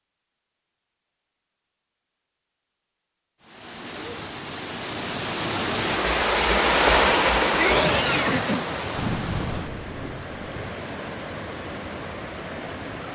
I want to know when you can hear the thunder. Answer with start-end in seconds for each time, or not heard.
8.9-10.7.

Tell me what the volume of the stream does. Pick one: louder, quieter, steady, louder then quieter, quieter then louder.
louder then quieter.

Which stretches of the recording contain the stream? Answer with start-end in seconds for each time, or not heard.
3.4-13.0.